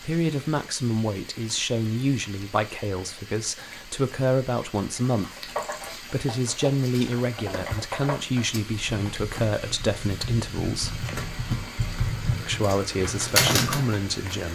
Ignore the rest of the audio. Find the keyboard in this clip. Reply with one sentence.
You can hear the keyboard from 5.2 to 14.0 s.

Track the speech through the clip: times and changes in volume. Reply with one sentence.
You can hear the speech from 0.0 to 11.1 s, at a steady volume; and briefly from 12.4 to 14.5 s.